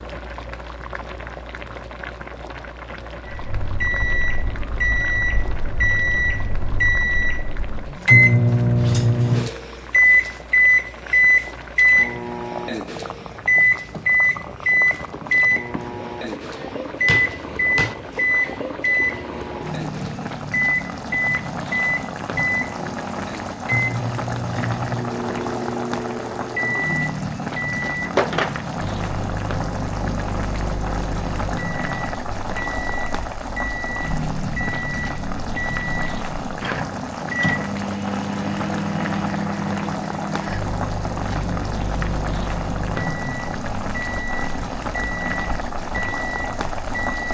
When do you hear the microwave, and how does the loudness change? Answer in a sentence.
You can hear the microwave from 3.2 to 47.3 s, getting quieter.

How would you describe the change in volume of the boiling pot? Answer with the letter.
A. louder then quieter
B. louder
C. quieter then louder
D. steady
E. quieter
B.